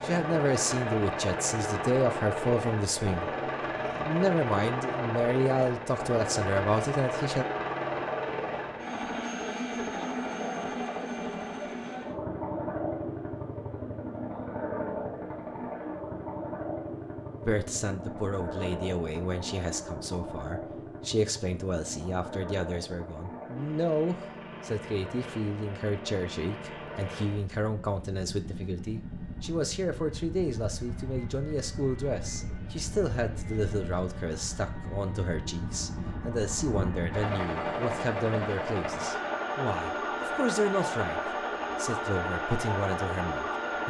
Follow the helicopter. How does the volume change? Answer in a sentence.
The loudness of the helicopter goes down, then up.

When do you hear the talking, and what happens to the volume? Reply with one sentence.
You can hear the talking from 0.0 to 7.5 s, at a steady volume; and from 17.4 to 43.8 s, at a steady volume.